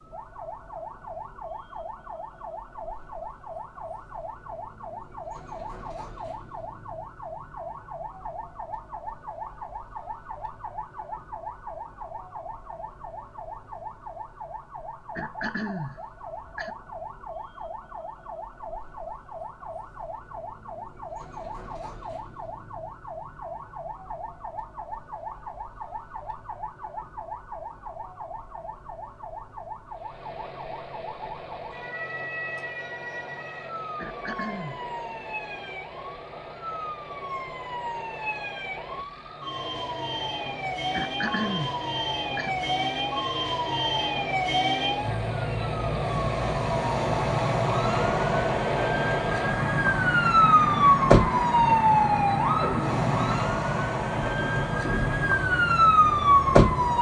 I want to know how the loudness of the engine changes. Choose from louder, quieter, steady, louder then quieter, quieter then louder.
louder.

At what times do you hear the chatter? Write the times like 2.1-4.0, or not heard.
not heard.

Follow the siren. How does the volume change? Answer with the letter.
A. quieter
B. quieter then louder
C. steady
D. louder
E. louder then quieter
D.